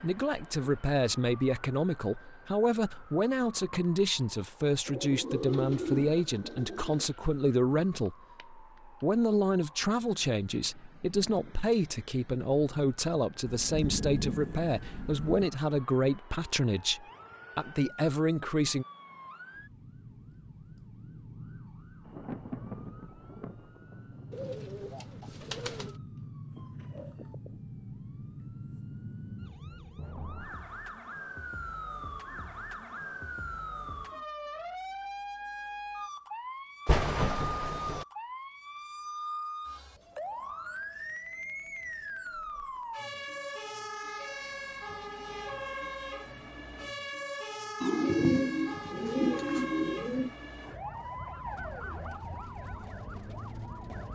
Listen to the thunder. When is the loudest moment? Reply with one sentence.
The loudest moment of the thunder is at 37 seconds.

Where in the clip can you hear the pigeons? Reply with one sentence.
You can hear the pigeons from 4.8 to 7.1 s, from 24.3 to 25.9 s and from 47.8 to 50.3 s.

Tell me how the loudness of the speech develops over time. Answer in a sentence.
The loudness of the speech stays about the same.